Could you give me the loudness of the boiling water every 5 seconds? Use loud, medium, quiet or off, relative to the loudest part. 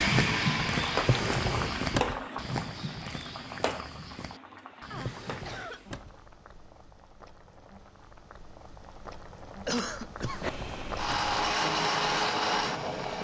loud, quiet, loud.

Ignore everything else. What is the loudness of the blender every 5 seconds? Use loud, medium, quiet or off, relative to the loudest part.
loud, off, loud.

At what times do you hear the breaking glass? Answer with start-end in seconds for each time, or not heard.
not heard.